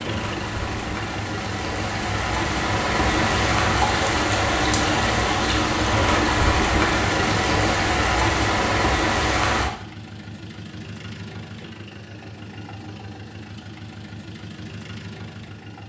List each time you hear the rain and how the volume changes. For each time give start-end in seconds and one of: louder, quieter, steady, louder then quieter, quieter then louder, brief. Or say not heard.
0.0-9.7 louder.